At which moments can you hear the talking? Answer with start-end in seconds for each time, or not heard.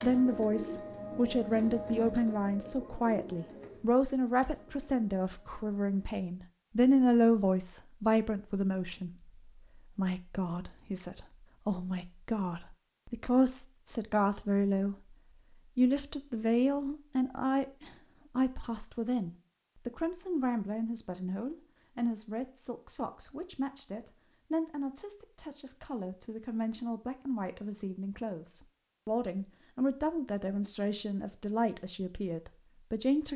0.0-14.9, 15.8-33.3.